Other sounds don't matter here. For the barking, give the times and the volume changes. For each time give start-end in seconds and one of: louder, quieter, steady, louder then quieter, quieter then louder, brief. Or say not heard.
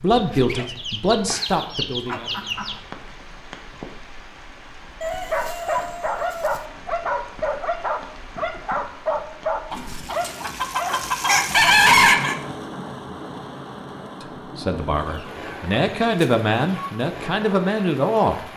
5.0-11.8 steady.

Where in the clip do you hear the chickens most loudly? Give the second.
12 s.